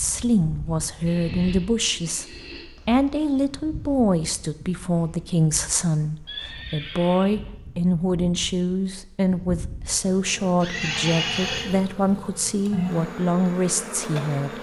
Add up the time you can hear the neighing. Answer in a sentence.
You can hear the neighing for 4 seconds altogether.